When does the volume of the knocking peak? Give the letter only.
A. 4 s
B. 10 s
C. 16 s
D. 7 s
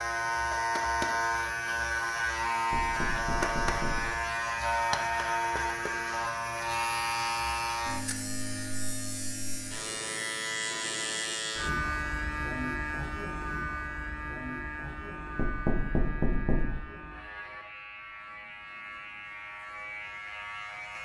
C.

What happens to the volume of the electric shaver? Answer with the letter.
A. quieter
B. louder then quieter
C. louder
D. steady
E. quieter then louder
A.